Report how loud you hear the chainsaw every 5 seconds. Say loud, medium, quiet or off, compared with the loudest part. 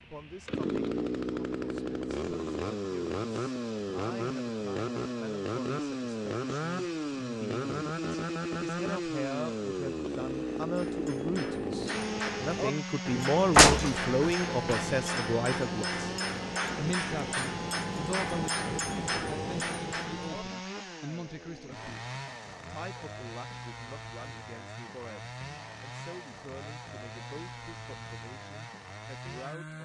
loud, loud, loud, medium, medium, medium.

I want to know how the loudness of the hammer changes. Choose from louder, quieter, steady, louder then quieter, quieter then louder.
steady.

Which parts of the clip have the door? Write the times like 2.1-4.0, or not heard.
13.6-14.8.